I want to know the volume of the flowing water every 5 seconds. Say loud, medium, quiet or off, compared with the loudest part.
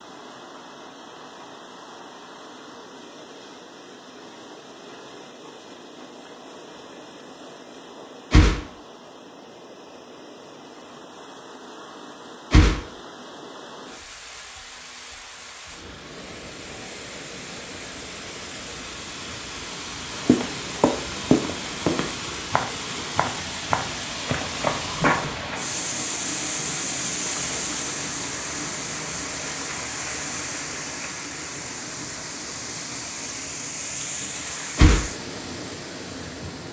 quiet, quiet, quiet, medium, loud, loud, loud, medium.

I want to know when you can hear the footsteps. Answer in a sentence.
You can hear the footsteps from 20.1 to 25.6 s.